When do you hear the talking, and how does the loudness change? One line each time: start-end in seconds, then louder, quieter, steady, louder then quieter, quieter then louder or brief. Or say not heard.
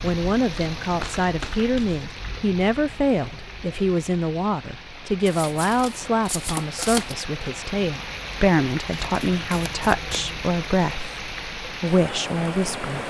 0.0-13.0 steady.